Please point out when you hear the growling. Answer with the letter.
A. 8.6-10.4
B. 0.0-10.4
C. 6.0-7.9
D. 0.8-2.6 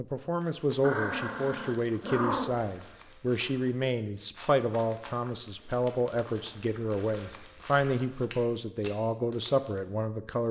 D.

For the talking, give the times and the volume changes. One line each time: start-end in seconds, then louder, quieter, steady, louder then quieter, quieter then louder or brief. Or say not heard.
0.0-10.4 steady.